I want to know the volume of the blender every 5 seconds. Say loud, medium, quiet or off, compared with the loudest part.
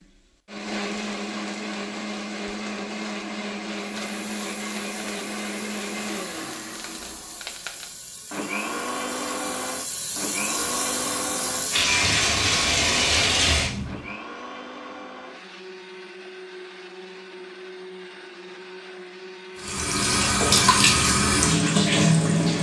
loud, loud, loud, medium, off.